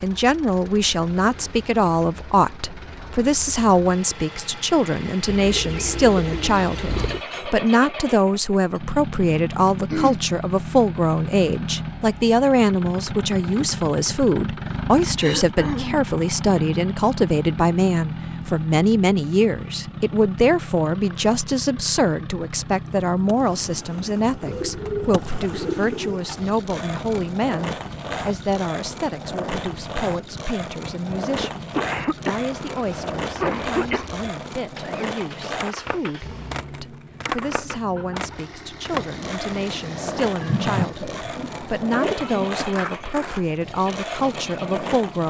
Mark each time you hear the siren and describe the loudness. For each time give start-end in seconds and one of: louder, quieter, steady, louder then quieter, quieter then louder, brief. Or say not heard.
not heard.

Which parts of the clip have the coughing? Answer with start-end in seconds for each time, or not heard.
9.8-10.2, 15.2-16.1, 31.4-34.0.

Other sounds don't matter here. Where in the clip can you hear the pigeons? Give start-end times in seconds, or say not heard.
5.2-7.2, 24.3-26.2, 40.4-42.5.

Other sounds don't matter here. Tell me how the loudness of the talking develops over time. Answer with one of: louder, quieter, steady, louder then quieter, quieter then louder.
quieter.